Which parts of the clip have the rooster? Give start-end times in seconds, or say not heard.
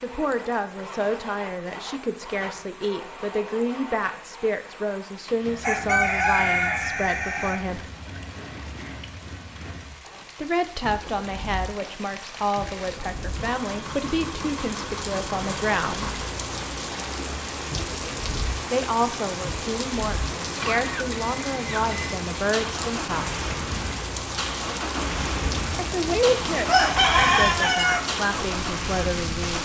5.6-7.6, 25.2-28.1.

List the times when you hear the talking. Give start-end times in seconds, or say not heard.
0.0-7.8, 10.3-16.1, 18.7-23.4, 25.8-29.6.